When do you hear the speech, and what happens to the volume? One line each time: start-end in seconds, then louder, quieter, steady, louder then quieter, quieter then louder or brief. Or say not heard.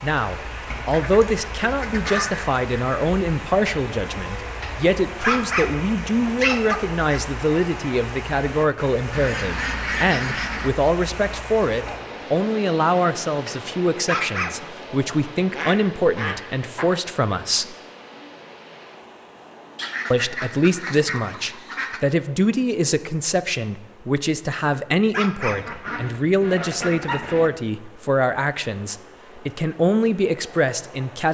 0.0-17.8 steady
20.1-31.2 steady.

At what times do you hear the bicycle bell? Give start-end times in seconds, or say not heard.
not heard.